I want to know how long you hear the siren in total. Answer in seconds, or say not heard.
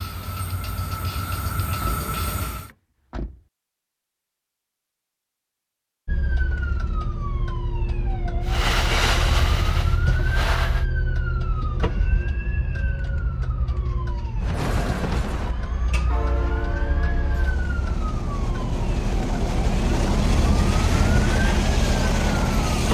17 s.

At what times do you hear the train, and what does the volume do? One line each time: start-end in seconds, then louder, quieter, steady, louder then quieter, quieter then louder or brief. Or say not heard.
0.0-2.7 brief
8.4-10.8 brief
14.4-22.8 louder.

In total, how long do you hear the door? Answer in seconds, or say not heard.
2 s.